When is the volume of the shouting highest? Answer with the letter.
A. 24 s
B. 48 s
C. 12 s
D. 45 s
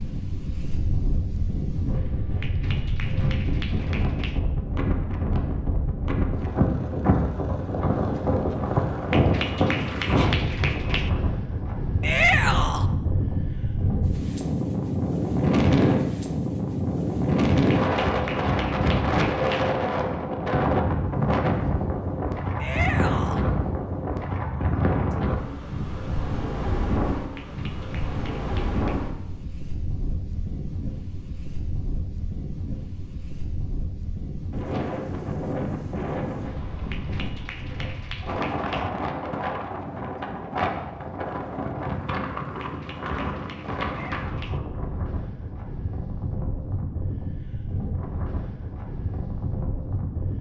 C.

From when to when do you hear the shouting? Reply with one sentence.
You can hear the shouting from 12.0 to 12.8 s, from 22.6 to 23.4 s and from 43.9 to 44.6 s.